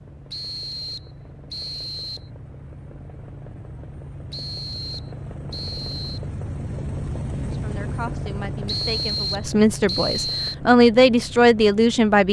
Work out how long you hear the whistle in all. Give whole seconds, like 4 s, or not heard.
6 s.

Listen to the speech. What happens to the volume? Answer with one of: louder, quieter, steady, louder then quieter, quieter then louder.
louder.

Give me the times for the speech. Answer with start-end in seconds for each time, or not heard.
7.3-12.2.